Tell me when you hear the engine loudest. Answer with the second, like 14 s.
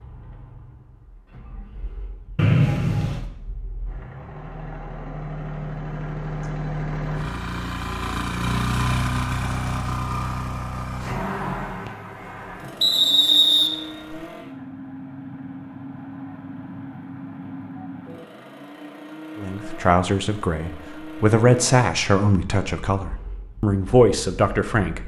9 s.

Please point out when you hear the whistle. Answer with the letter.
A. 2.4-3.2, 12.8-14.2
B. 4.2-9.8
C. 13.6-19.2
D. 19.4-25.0
A.